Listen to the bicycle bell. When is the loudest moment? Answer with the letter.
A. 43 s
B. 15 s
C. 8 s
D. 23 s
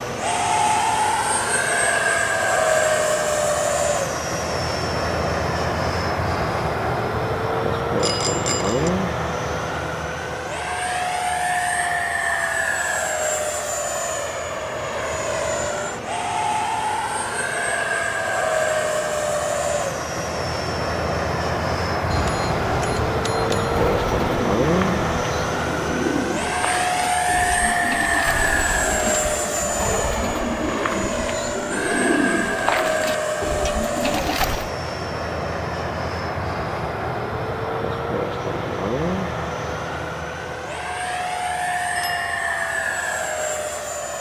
C.